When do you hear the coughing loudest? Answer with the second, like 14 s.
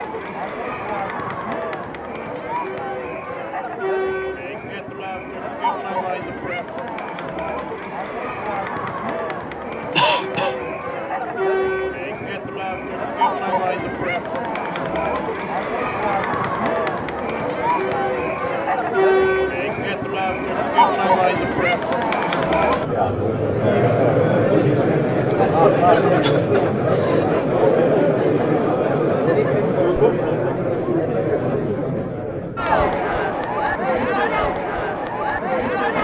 10 s.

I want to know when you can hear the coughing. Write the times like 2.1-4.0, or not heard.
9.9-10.6, 25.9-27.3.